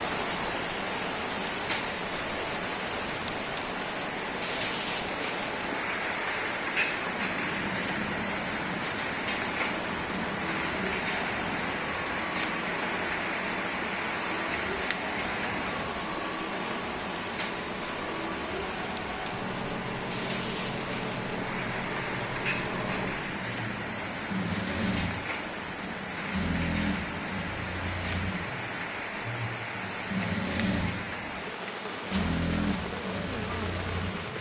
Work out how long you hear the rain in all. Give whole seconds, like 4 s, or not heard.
34 s.